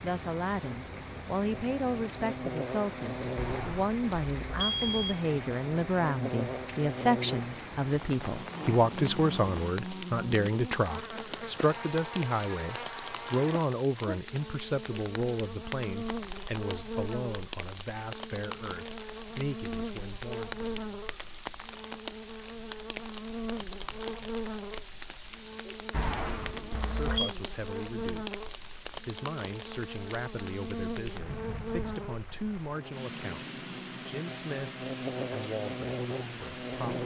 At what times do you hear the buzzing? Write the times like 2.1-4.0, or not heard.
0.1-37.0.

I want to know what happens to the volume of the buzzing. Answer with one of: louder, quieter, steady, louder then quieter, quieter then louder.
steady.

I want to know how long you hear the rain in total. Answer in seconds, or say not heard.
37 s.